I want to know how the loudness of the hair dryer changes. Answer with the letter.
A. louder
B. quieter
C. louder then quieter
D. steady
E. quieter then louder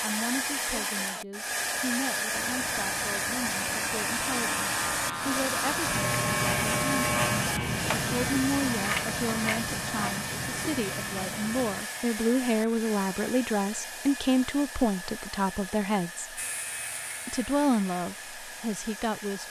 B.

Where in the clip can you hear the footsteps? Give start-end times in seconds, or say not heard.
not heard.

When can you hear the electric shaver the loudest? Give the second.
7 s.